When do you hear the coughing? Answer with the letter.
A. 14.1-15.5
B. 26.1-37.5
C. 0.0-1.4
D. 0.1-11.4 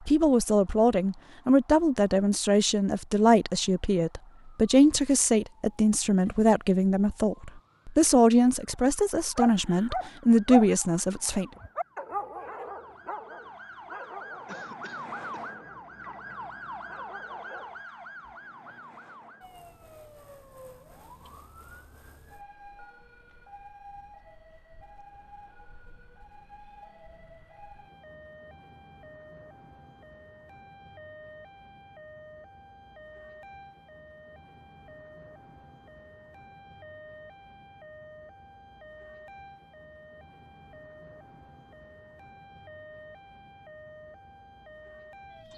A.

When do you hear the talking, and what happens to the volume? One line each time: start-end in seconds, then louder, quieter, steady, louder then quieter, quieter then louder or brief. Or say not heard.
0.1-11.4 steady.